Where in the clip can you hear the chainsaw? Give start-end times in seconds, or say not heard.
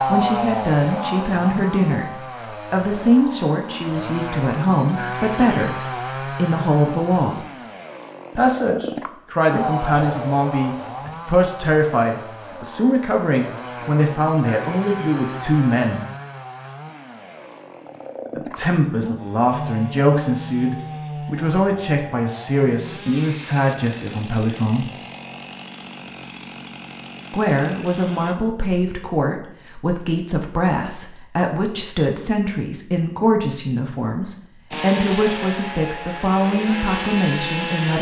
0.0-28.4, 34.7-37.9.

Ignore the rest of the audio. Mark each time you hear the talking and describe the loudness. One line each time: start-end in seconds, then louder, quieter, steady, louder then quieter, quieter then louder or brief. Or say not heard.
0.1-7.5 steady
8.3-16.1 steady
18.4-24.9 steady
27.3-37.9 steady.